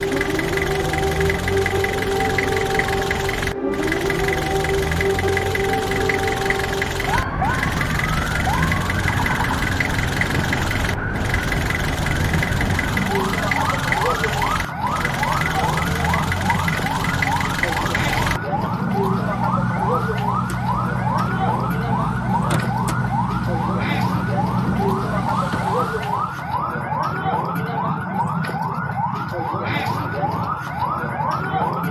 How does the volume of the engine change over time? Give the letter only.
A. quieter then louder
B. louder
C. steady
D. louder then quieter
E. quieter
C.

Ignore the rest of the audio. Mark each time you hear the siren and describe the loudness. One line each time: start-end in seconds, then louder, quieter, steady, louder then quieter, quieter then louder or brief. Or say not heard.
0.0-31.8 steady.